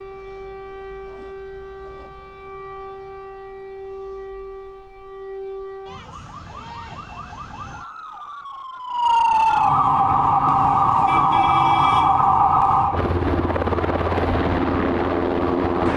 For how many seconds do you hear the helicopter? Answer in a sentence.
The helicopter can be heard for 6 seconds in total.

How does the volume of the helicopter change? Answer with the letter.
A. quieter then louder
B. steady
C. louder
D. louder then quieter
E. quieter
C.